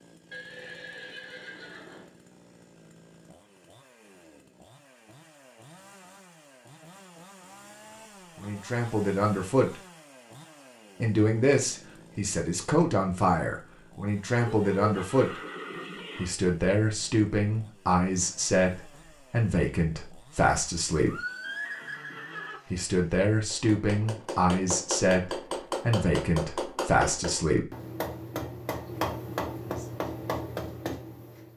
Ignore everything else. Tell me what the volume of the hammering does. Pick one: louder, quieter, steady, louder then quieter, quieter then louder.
steady.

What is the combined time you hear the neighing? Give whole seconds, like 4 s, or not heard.
5 s.